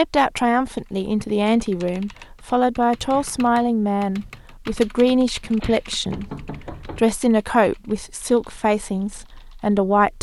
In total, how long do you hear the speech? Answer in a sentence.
You can hear the speech for 10 seconds altogether.